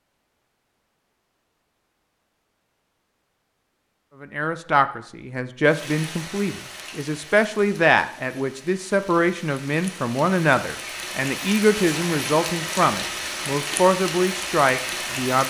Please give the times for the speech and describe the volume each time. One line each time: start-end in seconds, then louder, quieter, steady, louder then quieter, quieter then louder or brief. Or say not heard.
4.2-15.4 steady.